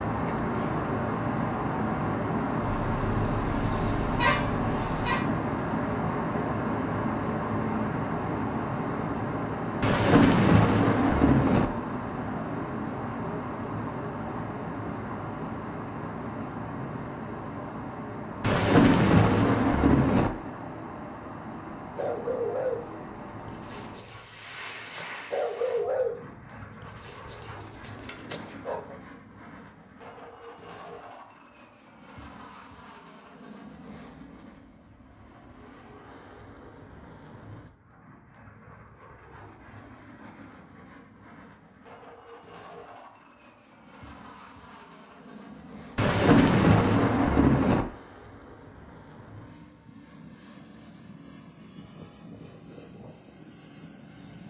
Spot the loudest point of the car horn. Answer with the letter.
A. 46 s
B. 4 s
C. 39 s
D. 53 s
B.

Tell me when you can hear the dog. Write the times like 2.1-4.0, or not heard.
21.9-28.9.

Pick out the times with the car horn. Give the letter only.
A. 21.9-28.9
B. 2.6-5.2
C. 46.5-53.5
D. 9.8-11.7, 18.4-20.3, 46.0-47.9
B.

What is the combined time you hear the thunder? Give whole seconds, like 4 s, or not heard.
6 s.